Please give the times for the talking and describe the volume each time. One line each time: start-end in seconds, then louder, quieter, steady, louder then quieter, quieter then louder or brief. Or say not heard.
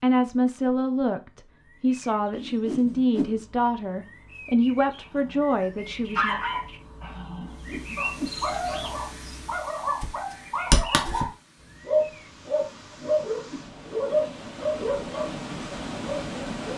0.0-6.4 steady.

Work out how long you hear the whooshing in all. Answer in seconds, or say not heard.
3 s.